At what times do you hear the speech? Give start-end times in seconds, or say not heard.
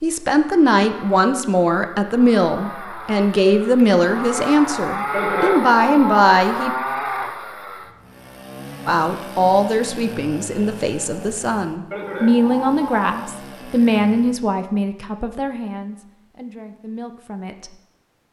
0.0-6.7, 8.8-17.8.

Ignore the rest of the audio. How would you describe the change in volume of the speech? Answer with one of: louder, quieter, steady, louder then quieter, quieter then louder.
quieter.